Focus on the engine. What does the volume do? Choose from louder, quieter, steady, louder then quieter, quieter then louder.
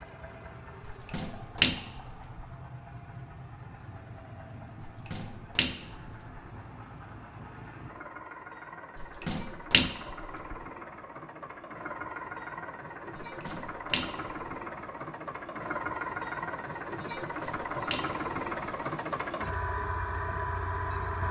louder.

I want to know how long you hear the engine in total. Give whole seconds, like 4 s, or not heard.
21 s.